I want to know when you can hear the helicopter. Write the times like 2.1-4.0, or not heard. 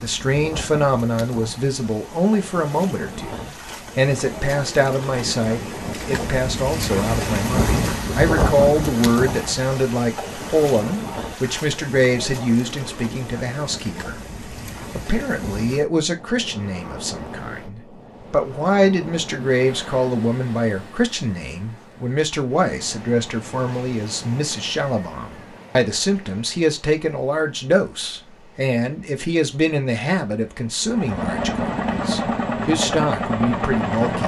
30.8-34.2.